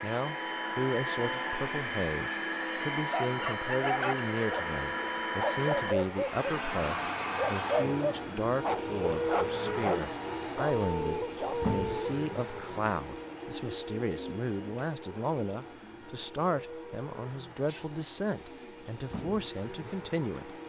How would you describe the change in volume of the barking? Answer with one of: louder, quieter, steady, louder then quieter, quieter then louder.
steady.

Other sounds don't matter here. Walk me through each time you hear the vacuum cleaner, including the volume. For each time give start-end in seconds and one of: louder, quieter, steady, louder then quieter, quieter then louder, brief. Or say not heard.
0.0-20.6 quieter.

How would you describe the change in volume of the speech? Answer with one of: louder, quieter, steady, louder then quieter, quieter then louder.
steady.